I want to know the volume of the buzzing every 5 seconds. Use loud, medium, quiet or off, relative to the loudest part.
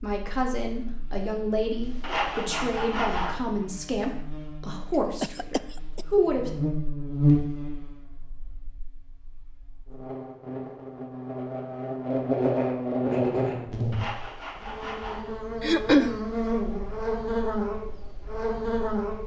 quiet, loud, loud, loud.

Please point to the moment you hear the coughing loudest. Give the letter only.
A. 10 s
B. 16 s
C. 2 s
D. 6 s
B.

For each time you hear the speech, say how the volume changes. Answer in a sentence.
You can hear the speech from 0.0 to 6.5 s, at a steady volume.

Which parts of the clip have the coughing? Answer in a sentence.
You can hear the coughing from 5.2 to 6.0 s and from 15.6 to 16.2 s.